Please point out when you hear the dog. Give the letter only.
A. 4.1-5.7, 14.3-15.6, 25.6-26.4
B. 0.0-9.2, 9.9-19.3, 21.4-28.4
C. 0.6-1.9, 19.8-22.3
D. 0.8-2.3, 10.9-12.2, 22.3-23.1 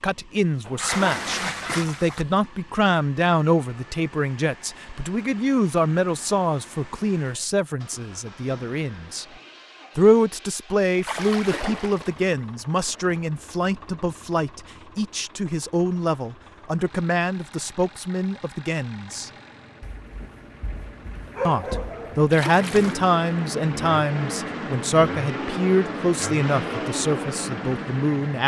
C.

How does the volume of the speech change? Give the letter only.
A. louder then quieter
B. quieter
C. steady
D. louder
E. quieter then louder
C.